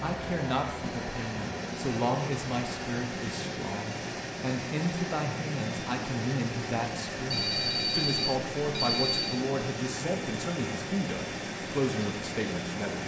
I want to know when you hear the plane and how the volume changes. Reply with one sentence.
You can hear the plane from 0.0 to 13.0 s, at a steady volume.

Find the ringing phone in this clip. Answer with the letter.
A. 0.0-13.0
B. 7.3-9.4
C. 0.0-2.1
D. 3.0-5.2
B.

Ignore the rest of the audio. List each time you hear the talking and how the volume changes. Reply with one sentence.
You can hear the talking from 0.0 to 13.0 s, at a steady volume.